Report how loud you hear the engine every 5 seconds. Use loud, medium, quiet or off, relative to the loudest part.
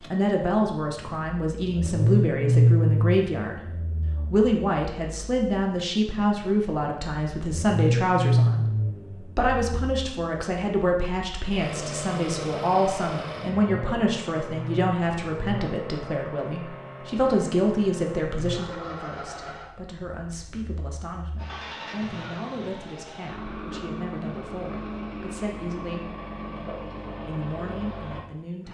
loud, loud, medium, quiet, quiet, quiet.